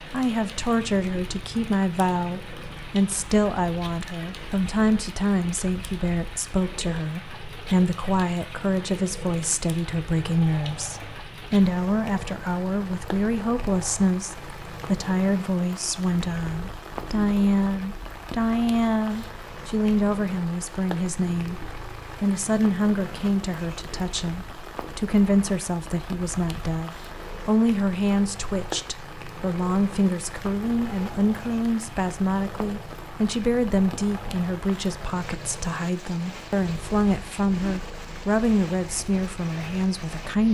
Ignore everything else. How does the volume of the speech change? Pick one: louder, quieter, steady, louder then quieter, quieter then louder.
steady.